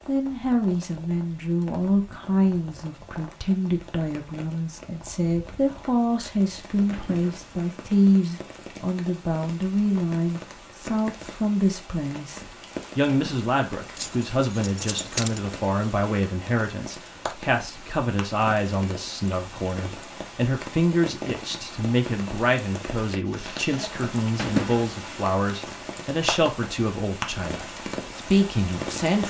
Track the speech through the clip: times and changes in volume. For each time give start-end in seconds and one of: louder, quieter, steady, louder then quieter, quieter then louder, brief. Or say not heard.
0.1-29.2 steady.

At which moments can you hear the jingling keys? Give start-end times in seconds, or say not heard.
6.9-7.5, 13.1-15.4, 24.4-24.9.